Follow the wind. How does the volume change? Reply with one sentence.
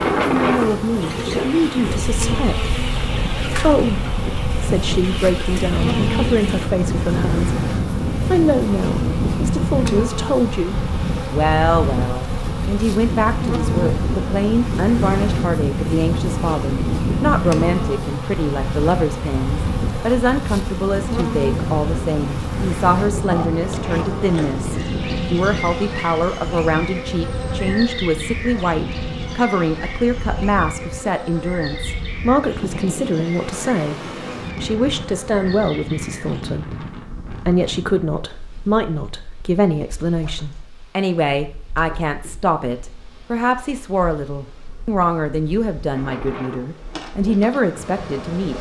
The loudness of the wind goes down.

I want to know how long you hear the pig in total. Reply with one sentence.
The pig can't be heard in this clip.